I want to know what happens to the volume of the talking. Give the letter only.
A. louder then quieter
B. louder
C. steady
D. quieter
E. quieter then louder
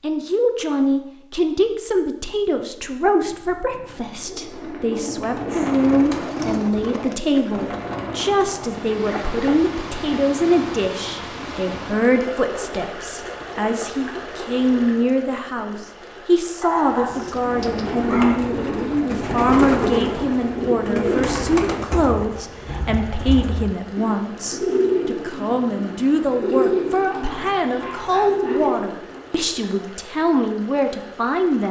C.